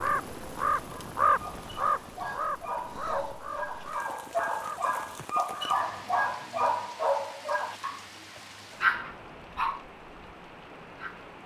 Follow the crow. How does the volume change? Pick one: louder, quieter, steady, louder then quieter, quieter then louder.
quieter.